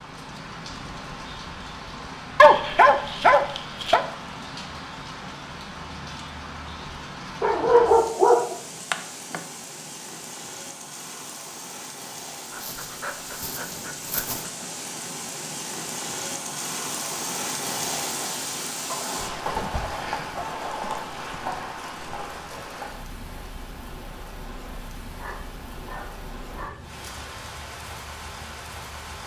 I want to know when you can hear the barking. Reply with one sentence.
You can hear the barking from 2.4 to 4.0 s, from 7.4 to 9.4 s, from 12.5 to 14.5 s, from 18.9 to 21.7 s and from 25.1 to 26.8 s.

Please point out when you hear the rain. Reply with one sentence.
You can hear the rain from 0.0 to 29.2 s.